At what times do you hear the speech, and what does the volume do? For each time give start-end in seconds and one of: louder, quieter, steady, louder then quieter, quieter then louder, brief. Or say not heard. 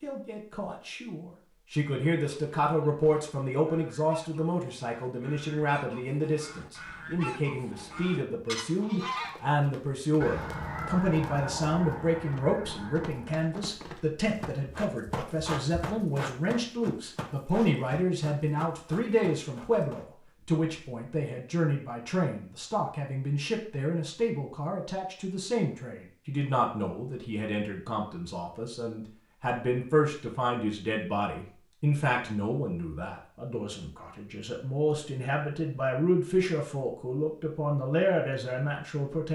0.0-39.2 steady.